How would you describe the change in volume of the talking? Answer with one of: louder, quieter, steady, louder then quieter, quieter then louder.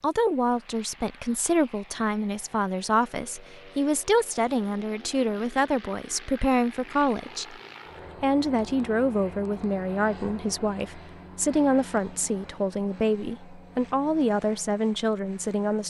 steady.